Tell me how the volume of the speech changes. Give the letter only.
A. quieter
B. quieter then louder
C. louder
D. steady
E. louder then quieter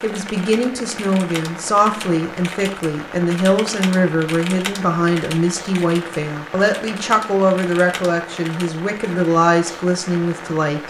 D.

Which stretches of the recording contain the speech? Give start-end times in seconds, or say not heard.
0.0-10.8.